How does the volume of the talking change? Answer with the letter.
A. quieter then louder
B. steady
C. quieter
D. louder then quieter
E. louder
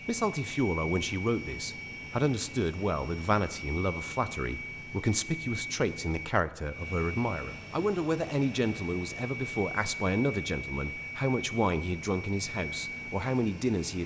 B.